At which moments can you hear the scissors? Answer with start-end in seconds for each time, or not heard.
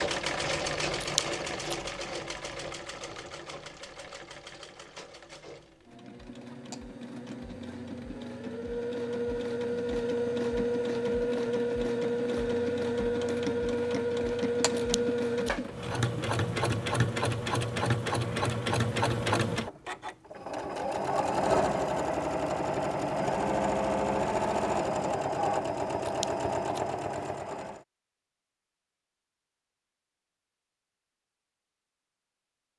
1.0-1.8, 14.8-15.5, 26.1-26.8.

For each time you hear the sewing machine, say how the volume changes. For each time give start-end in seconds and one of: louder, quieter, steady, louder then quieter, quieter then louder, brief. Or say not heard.
0.0-27.8 louder.